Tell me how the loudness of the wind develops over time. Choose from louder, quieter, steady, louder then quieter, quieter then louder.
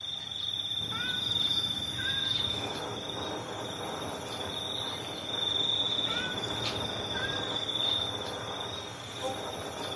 steady.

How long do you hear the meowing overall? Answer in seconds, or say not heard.
4 s.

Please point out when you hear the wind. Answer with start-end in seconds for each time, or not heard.
2.3-9.9.